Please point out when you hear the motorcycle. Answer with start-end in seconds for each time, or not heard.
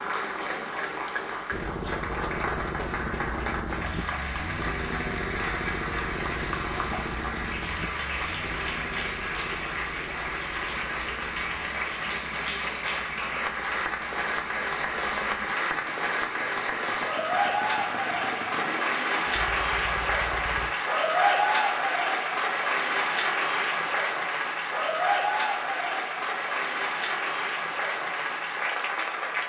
1.5-20.8.